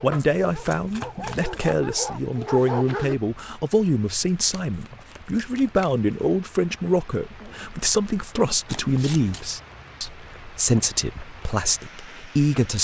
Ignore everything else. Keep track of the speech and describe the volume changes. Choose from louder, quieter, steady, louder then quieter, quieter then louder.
steady.